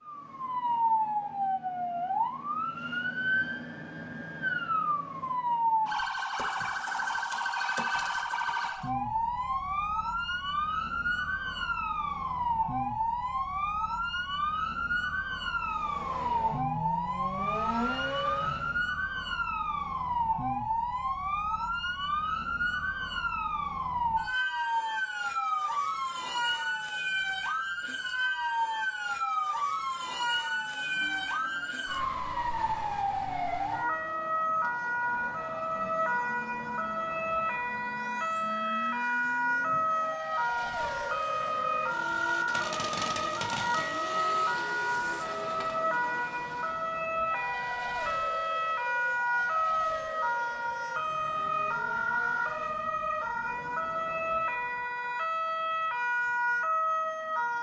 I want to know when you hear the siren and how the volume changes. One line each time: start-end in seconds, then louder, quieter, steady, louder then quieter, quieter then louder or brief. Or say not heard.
0.0-57.5 steady.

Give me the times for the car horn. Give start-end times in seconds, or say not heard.
not heard.